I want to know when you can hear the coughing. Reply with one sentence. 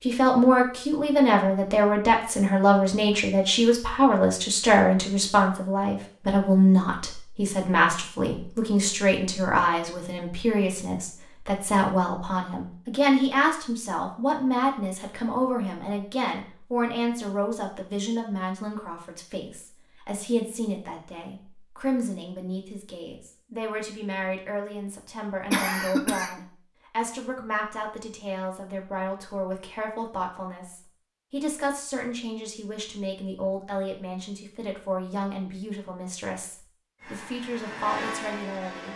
The coughing can be heard from 25.5 to 26.4 s.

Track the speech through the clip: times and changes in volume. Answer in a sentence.
The speech can be heard from 0.1 to 38.9 s, getting quieter.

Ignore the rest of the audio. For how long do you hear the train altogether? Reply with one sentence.
You can hear the train for 2 seconds altogether.